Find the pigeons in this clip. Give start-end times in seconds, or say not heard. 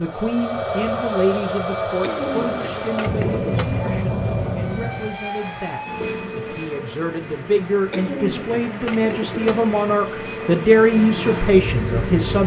2.0-4.0, 7.9-9.8.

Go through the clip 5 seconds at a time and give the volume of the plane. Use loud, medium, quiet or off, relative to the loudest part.
loud, medium, loud.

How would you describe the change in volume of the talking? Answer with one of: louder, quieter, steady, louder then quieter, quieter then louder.
quieter then louder.